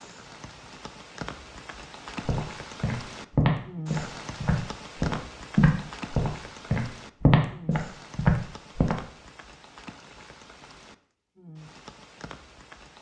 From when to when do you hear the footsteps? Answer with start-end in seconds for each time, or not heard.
2.2-8.9.